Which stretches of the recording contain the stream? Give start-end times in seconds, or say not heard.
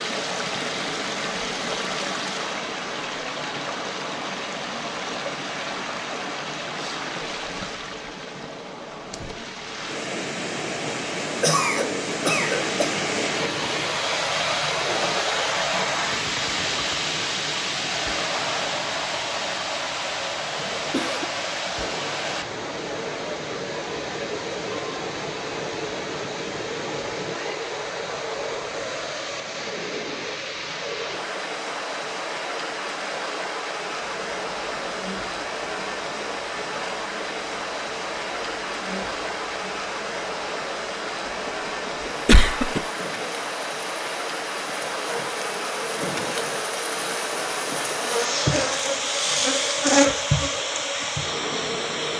0.0-52.1.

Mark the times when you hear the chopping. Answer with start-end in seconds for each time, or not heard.
not heard.